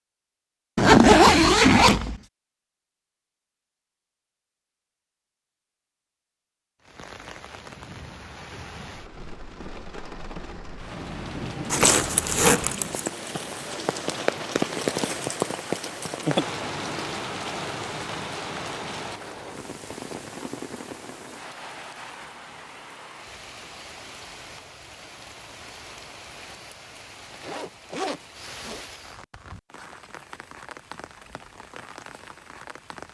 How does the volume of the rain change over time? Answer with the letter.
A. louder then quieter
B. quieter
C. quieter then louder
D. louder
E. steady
A.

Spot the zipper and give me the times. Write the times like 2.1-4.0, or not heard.
0.8-2.2, 11.7-13.1, 27.3-28.9.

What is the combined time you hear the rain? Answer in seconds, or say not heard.
26 s.